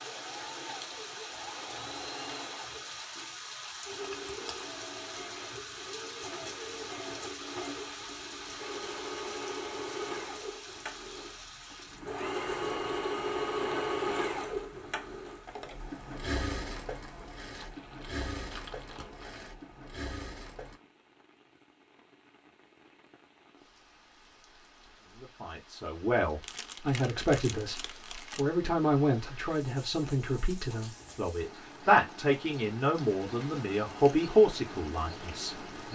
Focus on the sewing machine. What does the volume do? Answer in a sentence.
The loudness of the sewing machine goes up, then down.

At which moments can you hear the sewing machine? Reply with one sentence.
The sewing machine can be heard from 0.0 to 20.8 s.